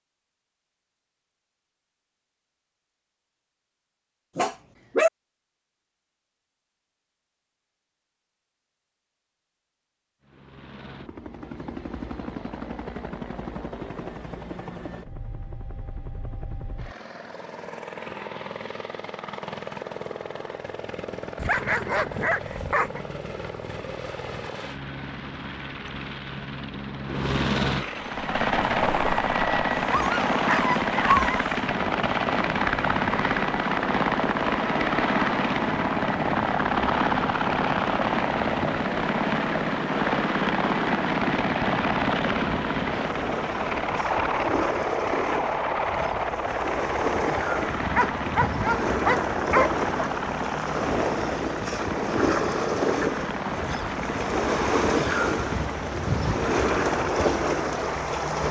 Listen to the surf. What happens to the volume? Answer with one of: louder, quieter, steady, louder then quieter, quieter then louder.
louder.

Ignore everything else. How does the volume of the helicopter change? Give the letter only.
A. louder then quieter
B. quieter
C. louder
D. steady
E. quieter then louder
A.